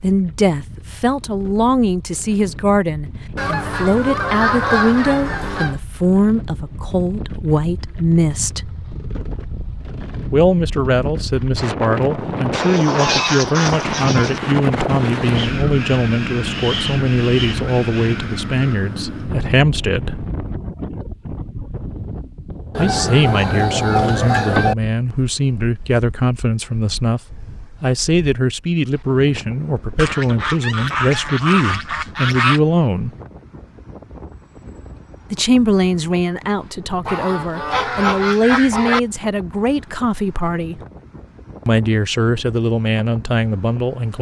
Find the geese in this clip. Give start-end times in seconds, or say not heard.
3.4-5.8, 12.5-14.4, 22.8-24.8, 29.9-32.6, 37.0-39.0.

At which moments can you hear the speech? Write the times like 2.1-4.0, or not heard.
0.0-8.7, 10.2-20.2, 22.8-33.1, 35.3-40.8, 41.6-44.1.